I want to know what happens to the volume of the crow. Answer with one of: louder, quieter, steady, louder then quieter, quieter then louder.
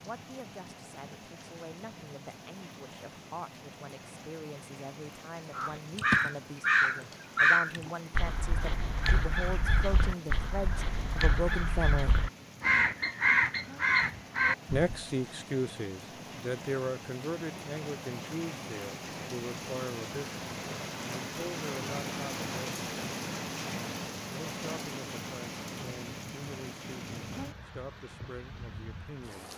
quieter then louder.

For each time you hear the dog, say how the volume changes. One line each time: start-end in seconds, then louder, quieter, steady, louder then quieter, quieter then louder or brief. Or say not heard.
not heard.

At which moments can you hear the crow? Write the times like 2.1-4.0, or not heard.
5.5-15.0.